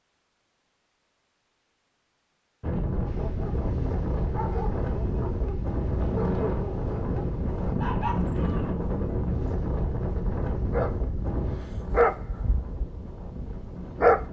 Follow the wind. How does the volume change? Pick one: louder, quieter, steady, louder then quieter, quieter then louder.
quieter.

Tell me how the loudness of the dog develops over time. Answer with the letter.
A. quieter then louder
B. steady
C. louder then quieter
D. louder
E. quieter
D.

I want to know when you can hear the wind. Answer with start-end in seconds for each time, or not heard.
2.6-14.2.